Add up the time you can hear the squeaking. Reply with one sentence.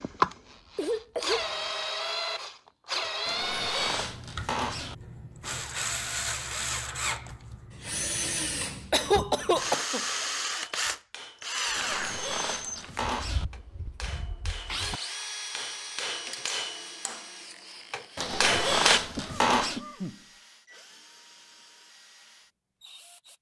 You can hear the squeaking for 5 seconds altogether.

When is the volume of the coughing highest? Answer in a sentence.
The volume of the coughing peaks at 9 seconds.